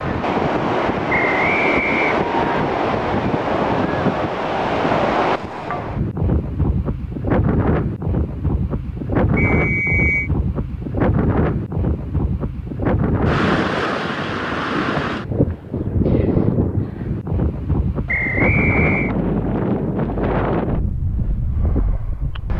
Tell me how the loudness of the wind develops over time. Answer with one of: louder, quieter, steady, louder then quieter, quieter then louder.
steady.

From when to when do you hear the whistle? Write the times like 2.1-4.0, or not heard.
1.1-2.6, 9.3-10.3, 18.1-19.1.